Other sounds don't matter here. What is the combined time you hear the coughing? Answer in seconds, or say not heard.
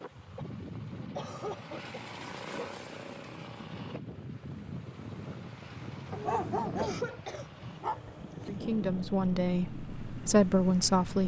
3 s.